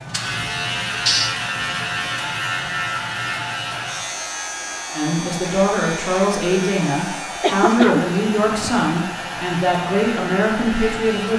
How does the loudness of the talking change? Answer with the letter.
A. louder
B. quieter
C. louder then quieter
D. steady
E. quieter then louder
D.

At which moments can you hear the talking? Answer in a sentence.
You can hear the talking from 5.0 to 11.3 s.